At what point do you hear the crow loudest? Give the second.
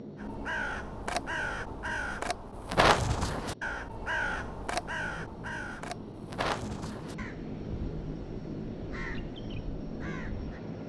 3 s.